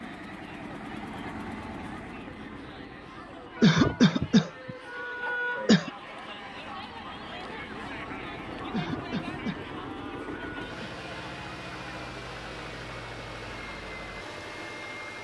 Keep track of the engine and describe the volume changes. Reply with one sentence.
The loudness of the engine goes down, then up.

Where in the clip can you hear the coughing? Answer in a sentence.
You can hear the coughing from 3.5 to 5.9 s and from 8.7 to 10.8 s.